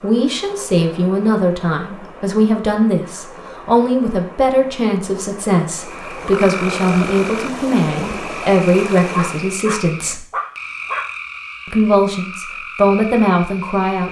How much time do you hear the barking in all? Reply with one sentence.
The barking can be heard for 2 seconds in total.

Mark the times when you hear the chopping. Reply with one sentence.
The chopping can't be heard in this clip.